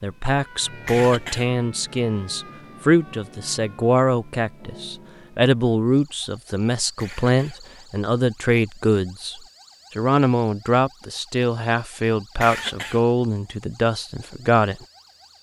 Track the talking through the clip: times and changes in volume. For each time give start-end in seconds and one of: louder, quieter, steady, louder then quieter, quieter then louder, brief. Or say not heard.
0.0-14.8 steady.